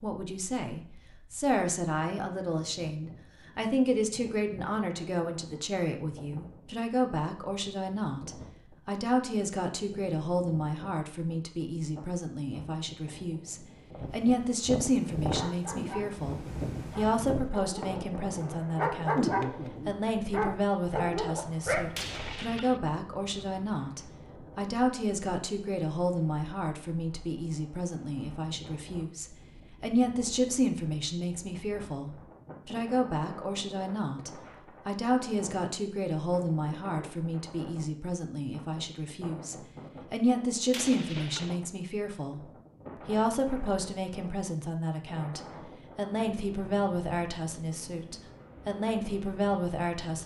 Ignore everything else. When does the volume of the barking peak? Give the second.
19 s.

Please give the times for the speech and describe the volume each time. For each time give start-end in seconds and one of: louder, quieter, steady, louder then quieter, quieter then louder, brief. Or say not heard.
0.0-50.2 steady.